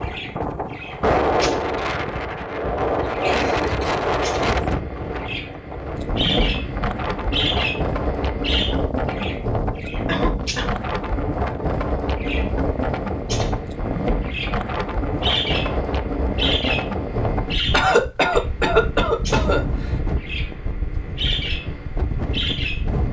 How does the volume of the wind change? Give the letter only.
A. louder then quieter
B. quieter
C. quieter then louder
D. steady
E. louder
B.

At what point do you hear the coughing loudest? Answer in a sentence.
The volume of the coughing peaks at 18 seconds.